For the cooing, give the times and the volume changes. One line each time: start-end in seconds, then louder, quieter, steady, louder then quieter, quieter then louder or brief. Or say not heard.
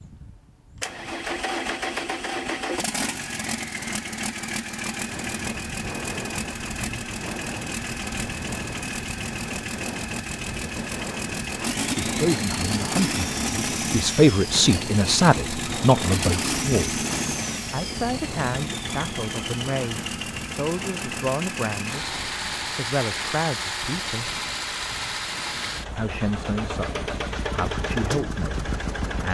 not heard.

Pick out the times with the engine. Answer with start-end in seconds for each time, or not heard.
0.0-29.2.